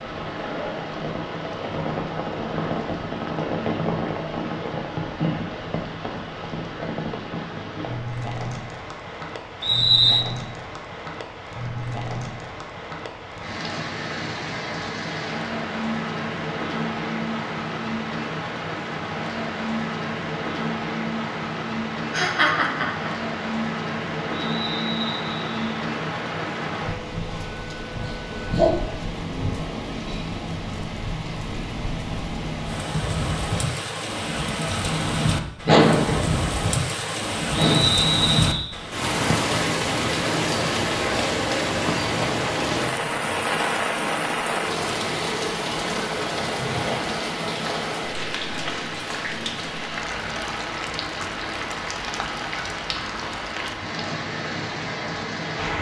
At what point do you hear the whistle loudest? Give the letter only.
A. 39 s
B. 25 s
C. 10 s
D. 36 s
C.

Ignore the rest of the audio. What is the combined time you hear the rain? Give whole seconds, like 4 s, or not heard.
56 s.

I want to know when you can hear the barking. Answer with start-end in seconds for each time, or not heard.
not heard.